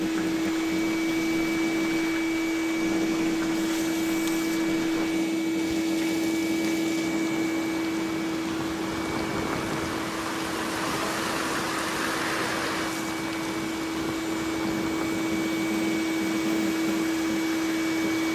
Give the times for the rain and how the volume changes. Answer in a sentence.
You can hear the rain from 0.0 to 18.3 s, getting louder then quieter.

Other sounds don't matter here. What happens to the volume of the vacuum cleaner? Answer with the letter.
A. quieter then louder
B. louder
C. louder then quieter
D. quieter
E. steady
A.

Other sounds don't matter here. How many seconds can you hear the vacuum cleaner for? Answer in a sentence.
The vacuum cleaner can be heard for 18 seconds in total.